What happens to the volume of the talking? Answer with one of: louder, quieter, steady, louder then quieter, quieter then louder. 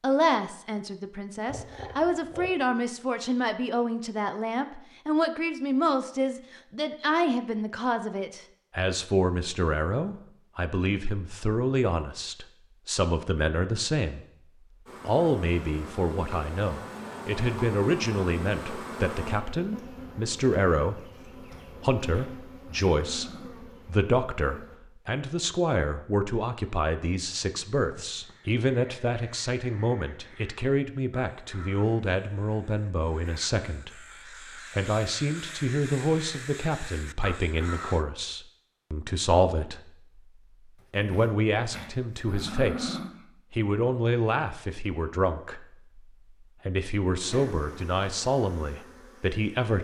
steady.